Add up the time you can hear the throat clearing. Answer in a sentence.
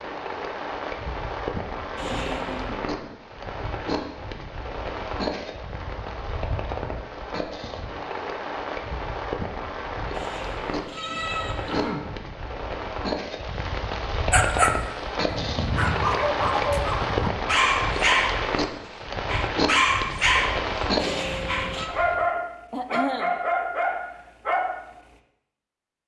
You can hear the throat clearing for 2 seconds altogether.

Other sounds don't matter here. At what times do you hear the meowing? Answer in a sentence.
You can hear the meowing from 1.9 to 2.7 s, from 10.1 to 11.9 s and from 20.9 to 21.9 s.